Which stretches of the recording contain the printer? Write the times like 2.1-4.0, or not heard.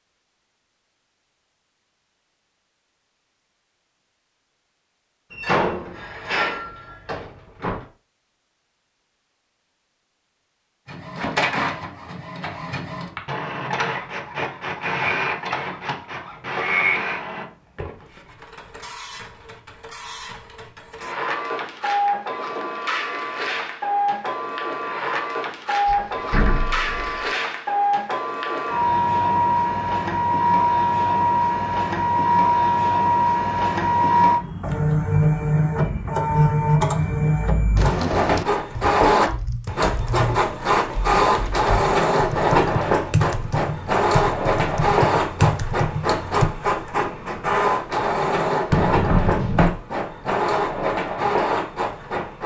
10.8-52.4.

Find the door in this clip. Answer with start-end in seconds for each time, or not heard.
5.3-7.8, 25.9-27.4, 48.7-49.8.